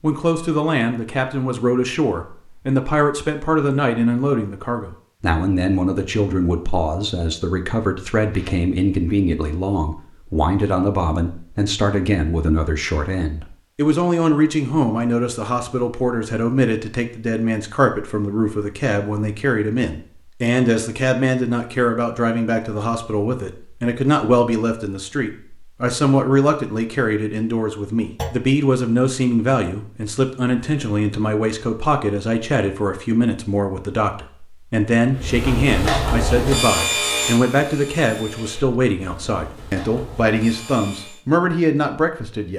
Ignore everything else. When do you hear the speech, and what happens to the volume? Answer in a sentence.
You can hear the speech from 0.0 to 42.5 s, at a steady volume.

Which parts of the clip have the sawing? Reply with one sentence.
You can hear the sawing from 35.1 to 41.2 s.